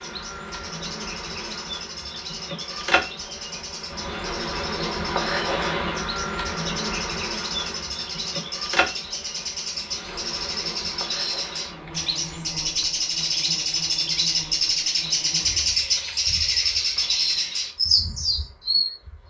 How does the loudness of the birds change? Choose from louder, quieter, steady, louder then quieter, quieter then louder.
louder.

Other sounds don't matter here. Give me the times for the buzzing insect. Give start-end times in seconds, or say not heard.
0.0-19.2.